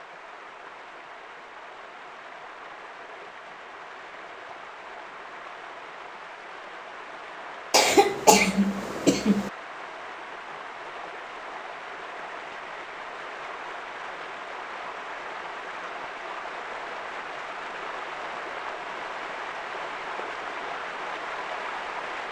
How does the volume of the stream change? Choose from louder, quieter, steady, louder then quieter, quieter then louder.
louder.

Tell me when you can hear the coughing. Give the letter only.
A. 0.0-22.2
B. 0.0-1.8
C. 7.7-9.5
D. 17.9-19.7
C.